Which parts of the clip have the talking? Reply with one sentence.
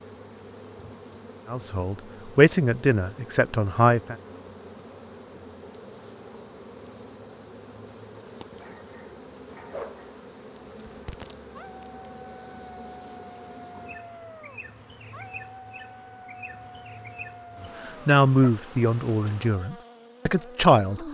The talking can be heard from 1.4 to 4.2 s and from 17.6 to 21.0 s.